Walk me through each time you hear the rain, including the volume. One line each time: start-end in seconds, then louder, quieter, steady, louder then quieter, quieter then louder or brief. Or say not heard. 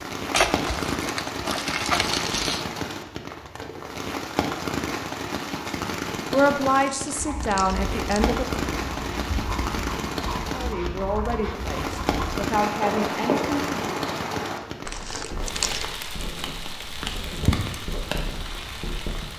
0.0-19.3 steady.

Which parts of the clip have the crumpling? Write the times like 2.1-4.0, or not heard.
0.3-2.6, 6.8-8.3, 14.8-16.1.